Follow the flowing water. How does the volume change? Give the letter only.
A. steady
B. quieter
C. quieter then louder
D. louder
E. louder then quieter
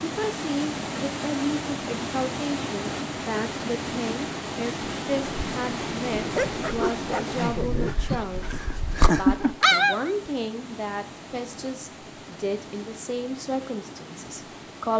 B.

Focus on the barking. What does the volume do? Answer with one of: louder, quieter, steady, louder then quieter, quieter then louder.
quieter then louder.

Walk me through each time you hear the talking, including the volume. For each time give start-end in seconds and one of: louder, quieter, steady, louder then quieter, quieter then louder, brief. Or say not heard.
0.0-14.9 steady.